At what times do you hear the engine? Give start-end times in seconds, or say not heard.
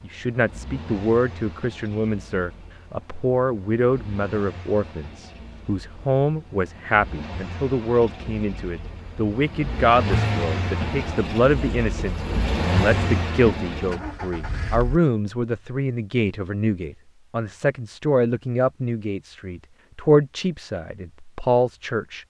0.0-15.0.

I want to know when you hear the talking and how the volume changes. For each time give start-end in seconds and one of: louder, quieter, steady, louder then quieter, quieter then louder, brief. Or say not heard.
0.0-22.2 steady.